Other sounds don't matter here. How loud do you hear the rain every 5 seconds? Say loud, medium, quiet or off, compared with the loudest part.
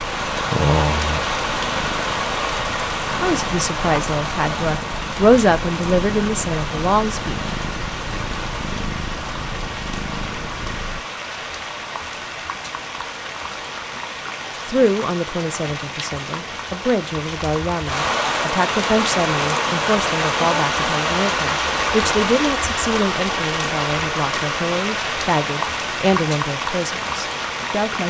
loud, medium, medium, loud, loud, loud.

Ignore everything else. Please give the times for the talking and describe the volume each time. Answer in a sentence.
You can hear the talking from 3.2 to 7.5 s, getting louder then quieter; and from 14.7 to 28.0 s, at a steady volume.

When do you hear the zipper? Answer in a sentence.
The zipper can't be heard in this clip.